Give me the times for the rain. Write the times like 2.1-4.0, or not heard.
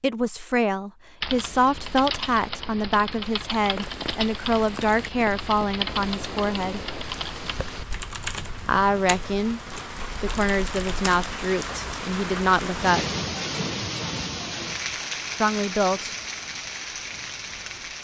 3.6-17.9.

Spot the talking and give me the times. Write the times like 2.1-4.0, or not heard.
0.0-6.9, 8.7-13.1, 15.4-16.1.